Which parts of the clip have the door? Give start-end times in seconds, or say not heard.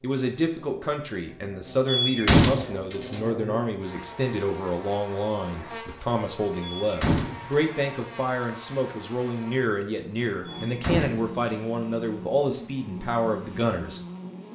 1.9-3.2, 6.6-8.0, 10.4-11.7.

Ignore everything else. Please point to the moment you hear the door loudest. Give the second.
2 s.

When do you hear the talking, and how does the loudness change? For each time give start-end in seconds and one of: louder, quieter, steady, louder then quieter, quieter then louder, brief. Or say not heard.
0.0-14.0 steady.